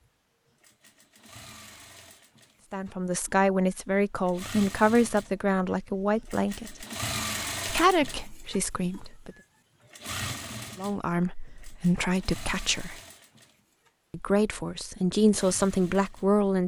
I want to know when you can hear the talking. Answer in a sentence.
The talking can be heard from 2.7 to 6.8 s, from 7.7 to 9.3 s, from 10.8 to 13.0 s and from 14.1 to 16.6 s.